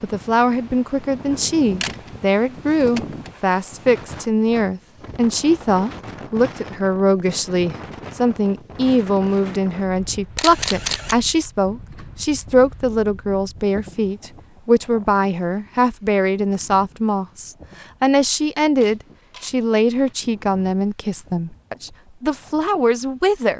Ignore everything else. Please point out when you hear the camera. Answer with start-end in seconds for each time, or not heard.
1.3-2.1, 2.7-3.4, 10.3-11.2, 18.8-20.1.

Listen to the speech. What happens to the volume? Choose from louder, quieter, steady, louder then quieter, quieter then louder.
steady.